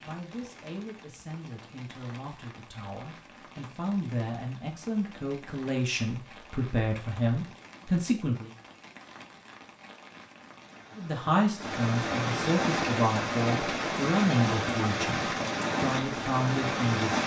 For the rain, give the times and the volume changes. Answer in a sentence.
You can hear the rain from 0.0 to 17.2 s, getting louder.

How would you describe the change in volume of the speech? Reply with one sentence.
The volume of the speech goes up.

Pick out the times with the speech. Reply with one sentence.
The speech can be heard from 0.0 to 8.5 s and from 10.9 to 17.2 s.